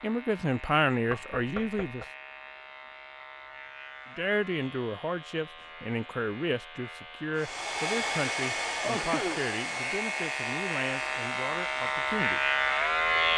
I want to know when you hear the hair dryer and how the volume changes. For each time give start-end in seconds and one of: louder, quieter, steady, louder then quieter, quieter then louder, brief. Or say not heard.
7.3-13.3 quieter.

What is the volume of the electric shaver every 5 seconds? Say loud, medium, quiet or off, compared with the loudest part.
quiet, quiet, loud.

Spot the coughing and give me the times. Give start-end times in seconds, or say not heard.
8.8-9.5.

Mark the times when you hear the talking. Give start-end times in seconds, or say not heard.
0.0-2.0, 4.2-12.5.